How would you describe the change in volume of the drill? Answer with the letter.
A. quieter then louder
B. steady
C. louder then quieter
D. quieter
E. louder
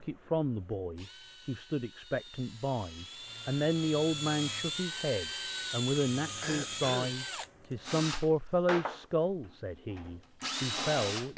E.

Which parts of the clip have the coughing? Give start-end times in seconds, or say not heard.
6.4-7.2.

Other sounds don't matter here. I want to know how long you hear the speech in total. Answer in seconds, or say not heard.
11 s.